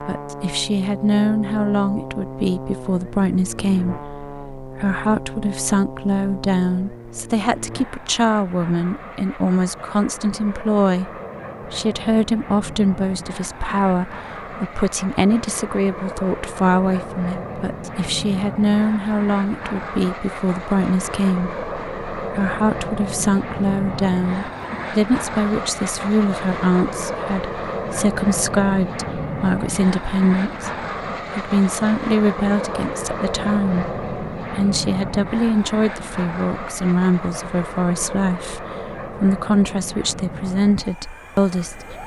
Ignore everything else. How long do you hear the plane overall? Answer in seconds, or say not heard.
42 s.